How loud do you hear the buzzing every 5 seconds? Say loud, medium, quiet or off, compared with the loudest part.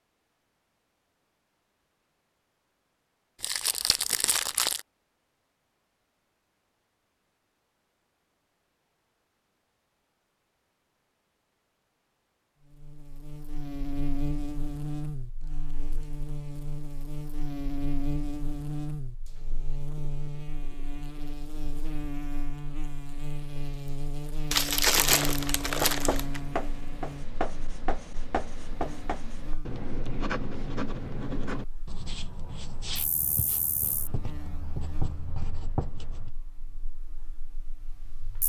off, off, loud, loud, loud, loud, quiet, quiet.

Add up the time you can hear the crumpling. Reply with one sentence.
You can hear the crumpling for 3 seconds altogether.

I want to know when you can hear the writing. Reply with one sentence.
You can hear the writing from 25.8 to 36.3 s.